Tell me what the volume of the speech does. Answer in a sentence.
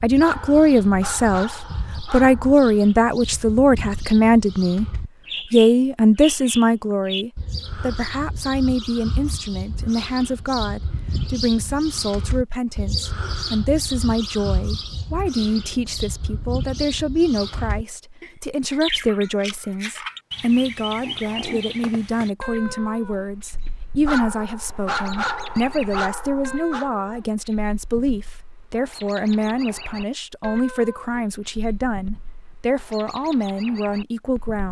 The loudness of the speech goes down.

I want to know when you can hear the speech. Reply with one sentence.
You can hear the speech from 0.0 to 4.8 s and from 5.5 to 34.6 s.